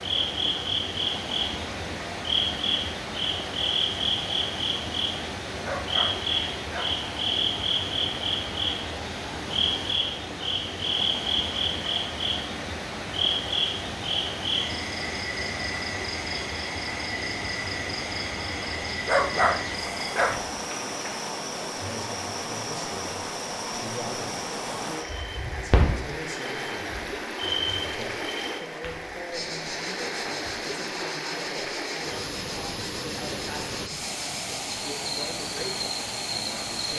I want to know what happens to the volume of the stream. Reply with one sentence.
The loudness of the stream stays about the same.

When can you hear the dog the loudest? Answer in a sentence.
The volume of the dog peaks at 19 seconds.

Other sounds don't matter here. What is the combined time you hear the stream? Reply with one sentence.
You can hear the stream for 37 seconds altogether.